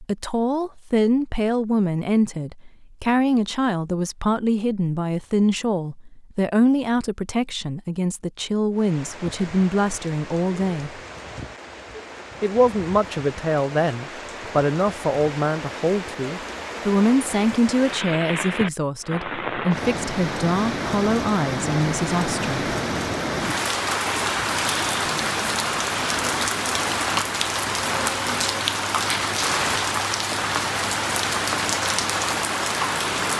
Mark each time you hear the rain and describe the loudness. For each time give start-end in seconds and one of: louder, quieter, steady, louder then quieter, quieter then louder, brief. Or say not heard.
8.7-33.3 louder.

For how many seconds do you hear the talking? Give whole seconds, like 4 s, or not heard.
21 s.